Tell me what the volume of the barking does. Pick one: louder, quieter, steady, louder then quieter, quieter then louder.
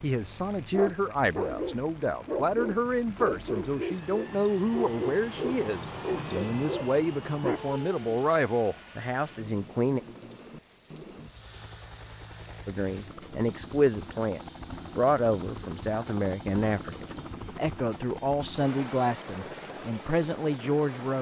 steady.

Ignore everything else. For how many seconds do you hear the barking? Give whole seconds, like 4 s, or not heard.
7 s.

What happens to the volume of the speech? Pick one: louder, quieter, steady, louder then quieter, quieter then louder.
steady.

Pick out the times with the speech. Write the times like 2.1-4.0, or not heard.
0.0-10.0, 12.7-21.1.